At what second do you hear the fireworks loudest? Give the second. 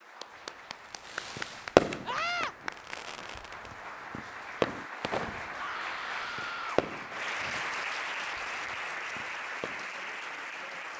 2 s.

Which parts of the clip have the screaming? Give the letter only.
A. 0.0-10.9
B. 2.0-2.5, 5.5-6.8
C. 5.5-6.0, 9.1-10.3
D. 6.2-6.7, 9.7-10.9
B.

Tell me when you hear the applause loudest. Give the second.
8 s.